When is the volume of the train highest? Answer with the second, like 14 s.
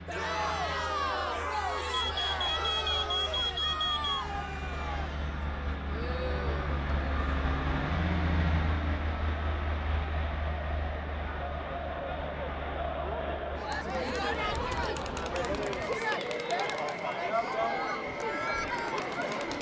8 s.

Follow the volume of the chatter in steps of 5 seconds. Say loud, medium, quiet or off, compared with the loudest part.
loud, medium, loud, loud.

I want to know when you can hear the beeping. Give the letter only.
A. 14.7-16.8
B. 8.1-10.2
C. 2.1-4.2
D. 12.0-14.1
C.